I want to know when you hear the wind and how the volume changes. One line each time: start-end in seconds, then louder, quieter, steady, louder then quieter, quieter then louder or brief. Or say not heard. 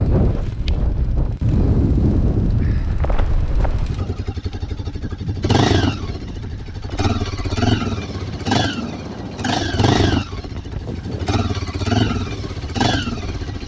0.0-13.6 quieter.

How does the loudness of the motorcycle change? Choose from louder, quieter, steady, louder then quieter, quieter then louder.
louder.